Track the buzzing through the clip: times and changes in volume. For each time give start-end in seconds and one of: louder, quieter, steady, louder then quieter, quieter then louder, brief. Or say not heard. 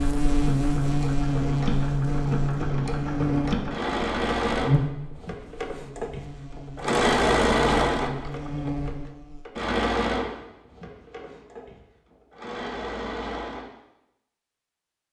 0.0-9.4 quieter then louder.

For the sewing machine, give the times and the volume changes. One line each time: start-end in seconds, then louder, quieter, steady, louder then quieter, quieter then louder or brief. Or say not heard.
0.0-13.7 louder then quieter.